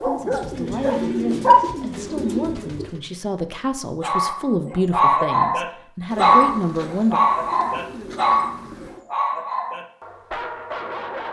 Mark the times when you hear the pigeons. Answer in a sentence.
You can hear the pigeons from 0.3 to 3.0 s and from 6.1 to 9.1 s.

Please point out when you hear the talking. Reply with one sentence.
The talking can be heard from 0.0 to 7.2 s.